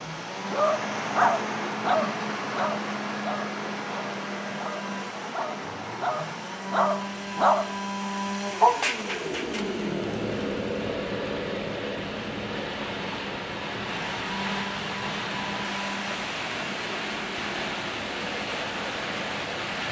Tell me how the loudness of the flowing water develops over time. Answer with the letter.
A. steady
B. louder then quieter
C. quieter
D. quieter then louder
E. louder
D.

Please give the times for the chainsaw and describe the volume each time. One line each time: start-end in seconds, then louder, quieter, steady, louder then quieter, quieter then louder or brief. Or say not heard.
0.0-19.8 louder then quieter.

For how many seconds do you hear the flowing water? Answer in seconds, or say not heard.
20 s.